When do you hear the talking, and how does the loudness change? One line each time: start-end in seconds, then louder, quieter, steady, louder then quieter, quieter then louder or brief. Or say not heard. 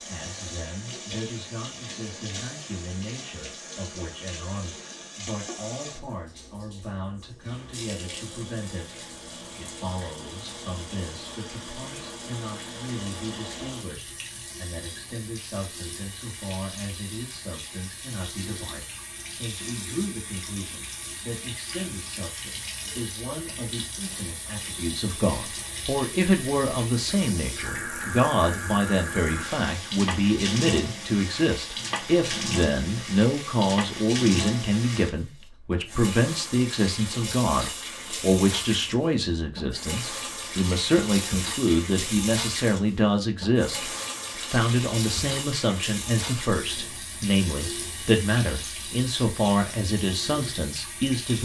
0.0-51.4 louder.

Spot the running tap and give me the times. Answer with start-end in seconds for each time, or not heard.
0.0-51.4.